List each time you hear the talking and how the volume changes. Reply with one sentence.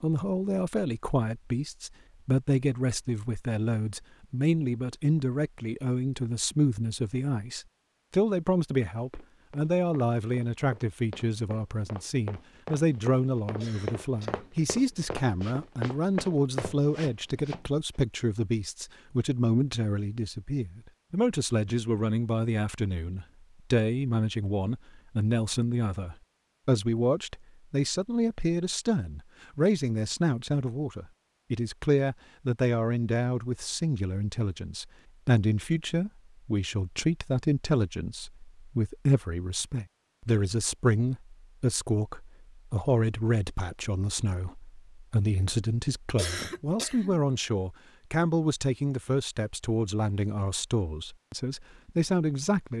You can hear the talking from 0.0 to 52.7 s, at a steady volume.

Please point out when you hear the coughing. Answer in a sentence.
The coughing can be heard from 13.6 to 14.5 s and from 46.1 to 47.2 s.